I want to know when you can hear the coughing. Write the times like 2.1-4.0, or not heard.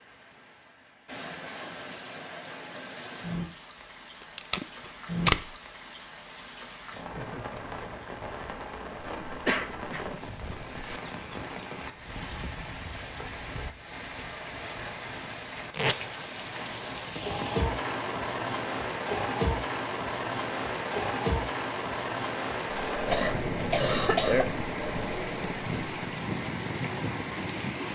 9.2-11.0, 23.1-24.5.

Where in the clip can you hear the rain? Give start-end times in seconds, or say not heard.
0.0-27.9.